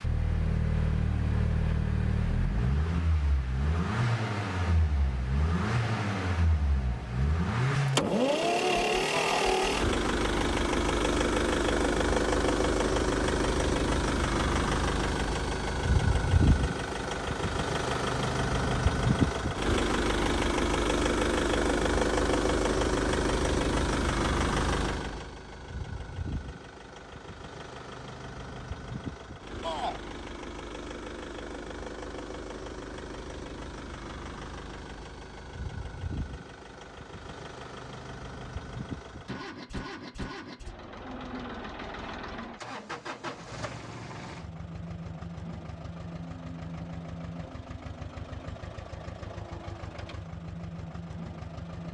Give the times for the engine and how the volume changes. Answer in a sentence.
You can hear the engine from 0.0 to 51.8 s, getting quieter.